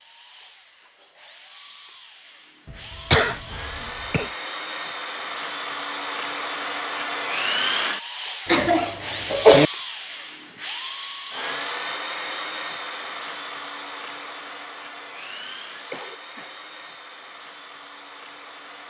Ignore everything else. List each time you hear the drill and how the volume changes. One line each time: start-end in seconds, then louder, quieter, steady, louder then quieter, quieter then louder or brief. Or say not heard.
0.0-18.8 louder then quieter.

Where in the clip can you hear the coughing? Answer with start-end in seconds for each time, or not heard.
2.7-4.3, 8.4-9.7, 15.9-16.5.